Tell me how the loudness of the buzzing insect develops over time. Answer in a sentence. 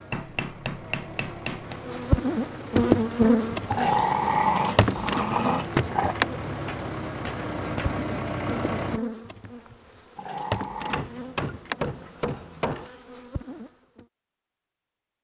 The loudness of the buzzing insect goes down.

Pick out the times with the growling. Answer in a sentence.
You can hear the growling from 3.6 to 6.2 s and from 10.2 to 11.1 s.